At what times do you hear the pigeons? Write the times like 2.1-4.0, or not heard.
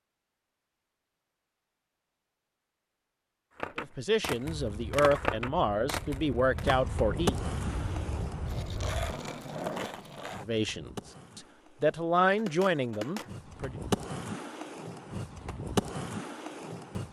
not heard.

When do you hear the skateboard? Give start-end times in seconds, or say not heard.
3.5-17.0.